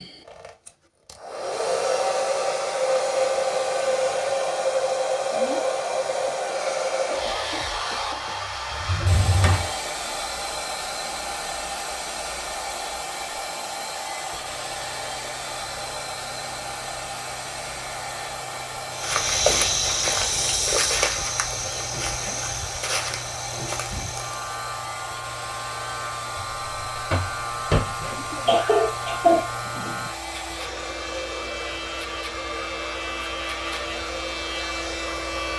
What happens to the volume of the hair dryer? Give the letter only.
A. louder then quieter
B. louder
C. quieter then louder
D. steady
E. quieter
E.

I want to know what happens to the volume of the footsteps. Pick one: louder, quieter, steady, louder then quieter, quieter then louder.
quieter.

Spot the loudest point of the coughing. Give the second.
29 s.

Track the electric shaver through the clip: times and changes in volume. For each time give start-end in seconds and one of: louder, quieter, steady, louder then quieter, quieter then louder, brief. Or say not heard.
14.3-35.5 louder.